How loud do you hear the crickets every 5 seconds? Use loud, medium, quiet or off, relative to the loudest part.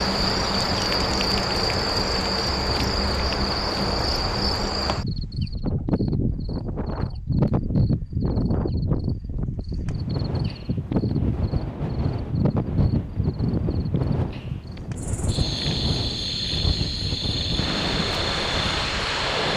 loud, loud, loud, medium.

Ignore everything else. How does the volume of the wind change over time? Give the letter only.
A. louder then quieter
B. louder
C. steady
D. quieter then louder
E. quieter
B.